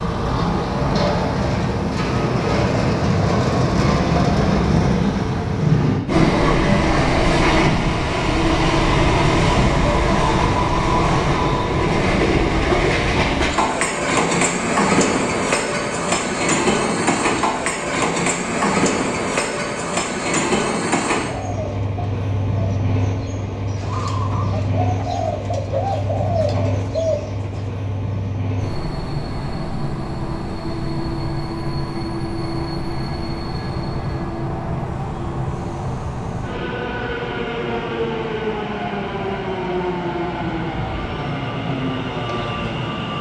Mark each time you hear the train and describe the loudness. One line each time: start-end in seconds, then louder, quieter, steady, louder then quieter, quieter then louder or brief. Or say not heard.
0.0-43.1 quieter.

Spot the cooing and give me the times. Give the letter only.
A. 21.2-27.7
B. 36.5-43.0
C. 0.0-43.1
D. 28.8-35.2
A.